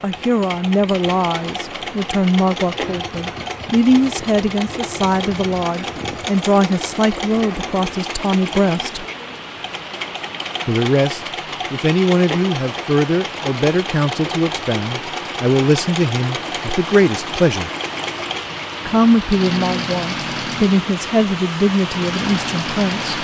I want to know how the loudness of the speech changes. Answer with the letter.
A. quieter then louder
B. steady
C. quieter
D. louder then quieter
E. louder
B.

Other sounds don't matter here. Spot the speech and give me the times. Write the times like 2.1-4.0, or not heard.
0.0-9.1, 10.7-17.7, 18.9-23.1.